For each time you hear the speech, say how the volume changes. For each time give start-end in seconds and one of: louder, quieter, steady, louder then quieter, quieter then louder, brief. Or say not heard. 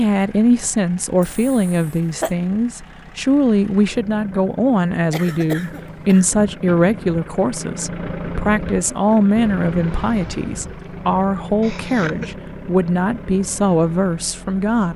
0.0-14.9 steady.